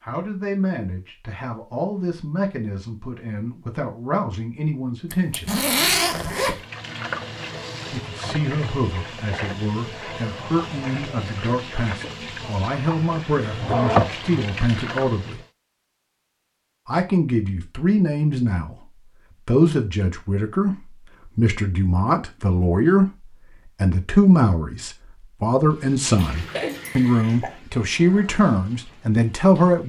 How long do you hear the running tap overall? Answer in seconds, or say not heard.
13 s.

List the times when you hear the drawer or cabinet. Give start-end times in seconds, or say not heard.
not heard.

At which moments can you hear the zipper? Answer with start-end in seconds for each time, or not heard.
5.1-6.7.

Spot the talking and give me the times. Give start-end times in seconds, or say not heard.
0.0-5.6, 7.9-15.4, 16.9-18.8, 19.4-29.8.